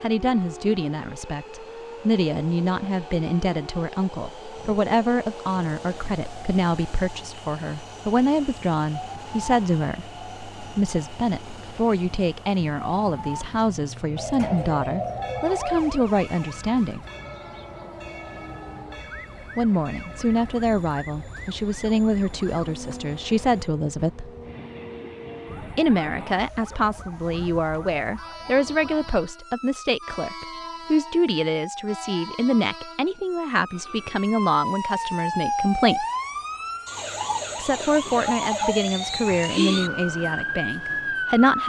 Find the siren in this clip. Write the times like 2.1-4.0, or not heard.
0.0-41.6.